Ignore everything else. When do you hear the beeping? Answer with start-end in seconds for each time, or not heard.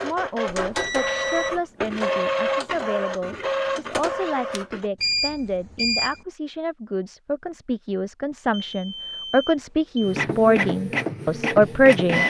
0.5-1.6, 5.0-6.2, 8.5-10.2.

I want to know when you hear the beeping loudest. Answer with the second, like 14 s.
5 s.